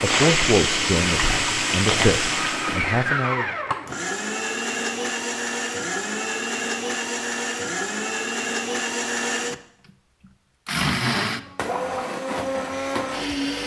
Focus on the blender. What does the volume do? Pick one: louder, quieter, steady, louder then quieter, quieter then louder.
steady.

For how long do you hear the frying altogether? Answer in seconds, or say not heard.
3 s.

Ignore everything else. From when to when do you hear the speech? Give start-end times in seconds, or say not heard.
0.0-3.5.